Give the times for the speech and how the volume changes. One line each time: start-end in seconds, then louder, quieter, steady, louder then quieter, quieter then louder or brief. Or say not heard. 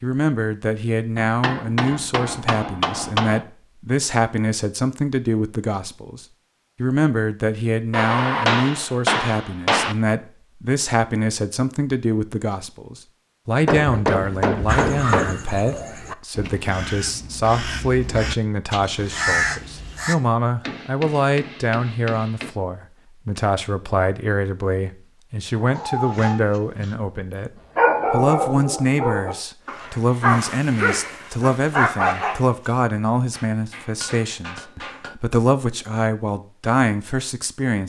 0.0-37.8 steady.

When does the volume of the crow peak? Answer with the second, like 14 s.
19 s.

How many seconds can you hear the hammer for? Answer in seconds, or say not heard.
10 s.